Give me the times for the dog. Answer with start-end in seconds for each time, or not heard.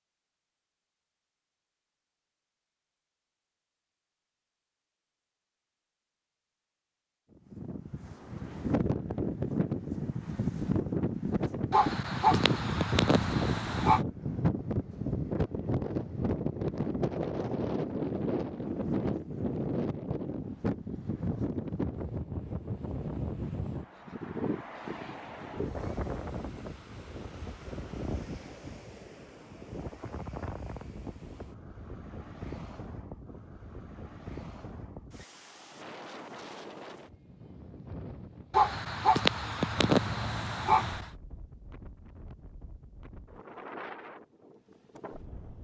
11.7-14.0, 38.5-41.1.